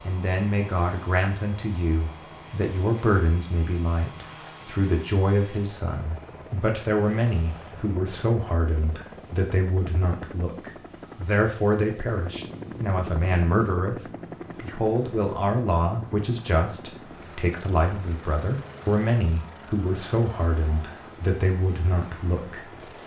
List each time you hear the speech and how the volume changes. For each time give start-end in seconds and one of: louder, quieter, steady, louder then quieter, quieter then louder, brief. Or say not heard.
0.0-22.8 steady.